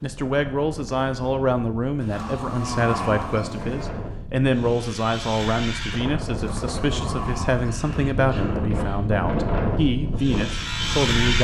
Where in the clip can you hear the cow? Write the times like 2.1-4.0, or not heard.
2.0-3.9, 6.3-8.0.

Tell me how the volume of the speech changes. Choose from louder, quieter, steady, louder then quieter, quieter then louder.
steady.